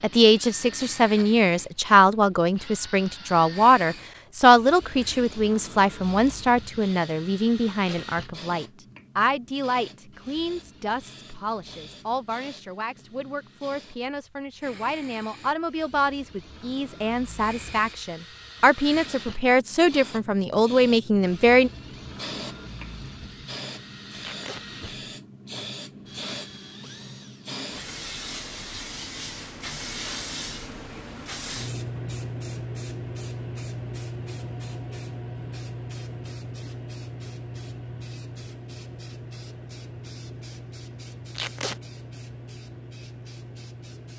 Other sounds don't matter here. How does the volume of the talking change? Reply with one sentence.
The loudness of the talking goes down, then up.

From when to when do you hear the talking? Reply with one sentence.
You can hear the talking from 0.0 to 21.7 s.